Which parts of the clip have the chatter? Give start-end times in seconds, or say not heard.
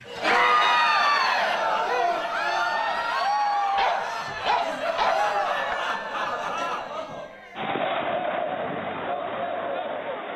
0.1-10.3.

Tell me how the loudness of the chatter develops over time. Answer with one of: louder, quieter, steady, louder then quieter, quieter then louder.
quieter.